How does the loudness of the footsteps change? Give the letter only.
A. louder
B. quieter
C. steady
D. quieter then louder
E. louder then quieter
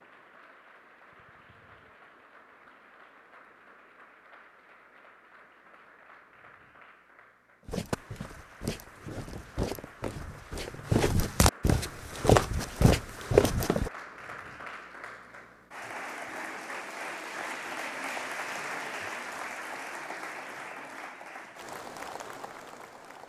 A.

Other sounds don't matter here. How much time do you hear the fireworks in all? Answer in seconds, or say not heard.
not heard.